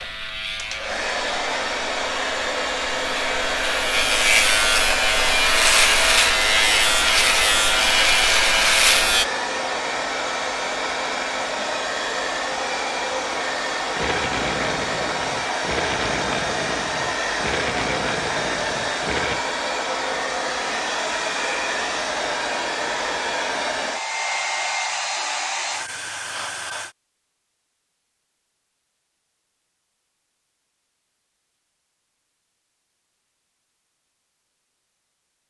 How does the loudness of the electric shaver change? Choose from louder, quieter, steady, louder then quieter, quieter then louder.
louder.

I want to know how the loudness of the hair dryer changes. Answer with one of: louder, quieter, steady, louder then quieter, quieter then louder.
steady.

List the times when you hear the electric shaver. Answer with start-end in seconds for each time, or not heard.
0.0-9.2.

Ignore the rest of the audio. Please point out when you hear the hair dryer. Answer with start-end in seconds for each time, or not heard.
0.0-26.9.